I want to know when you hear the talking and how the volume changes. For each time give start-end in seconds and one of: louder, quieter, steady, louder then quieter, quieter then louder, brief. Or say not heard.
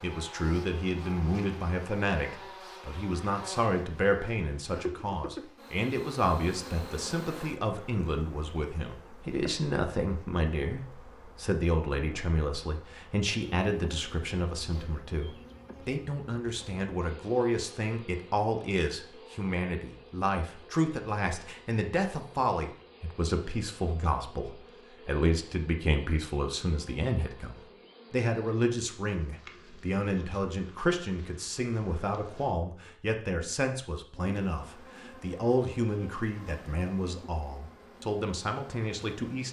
0.0-39.4 steady.